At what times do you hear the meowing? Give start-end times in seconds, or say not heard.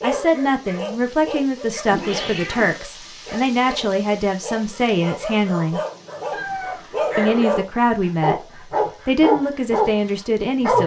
1.9-2.8, 6.3-7.5.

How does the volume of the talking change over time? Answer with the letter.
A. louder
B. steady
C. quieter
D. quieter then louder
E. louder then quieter
B.